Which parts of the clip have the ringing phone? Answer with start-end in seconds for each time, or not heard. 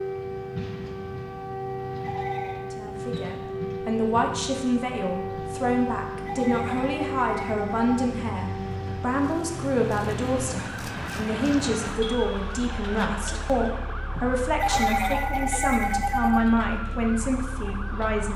2.0-2.6, 6.2-7.9, 14.6-16.4.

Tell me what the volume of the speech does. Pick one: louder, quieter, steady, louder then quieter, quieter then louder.
steady.